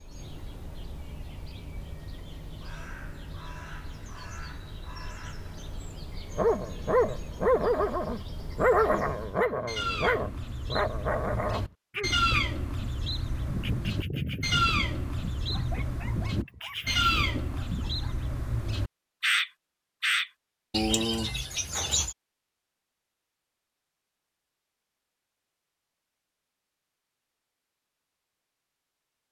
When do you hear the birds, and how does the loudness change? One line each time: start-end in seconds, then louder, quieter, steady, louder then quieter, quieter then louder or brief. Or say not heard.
0.0-22.1 louder.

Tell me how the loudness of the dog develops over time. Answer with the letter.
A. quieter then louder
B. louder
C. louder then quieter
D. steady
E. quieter
E.